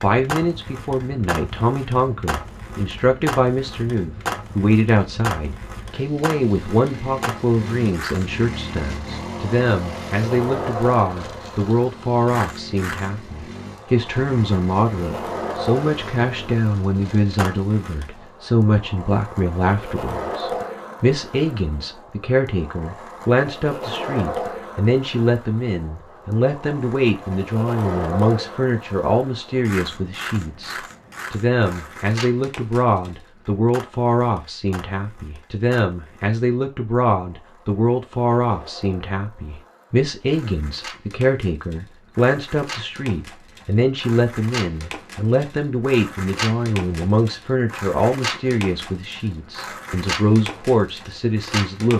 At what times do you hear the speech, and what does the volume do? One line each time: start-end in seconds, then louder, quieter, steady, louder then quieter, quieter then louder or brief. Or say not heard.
0.0-51.9 steady.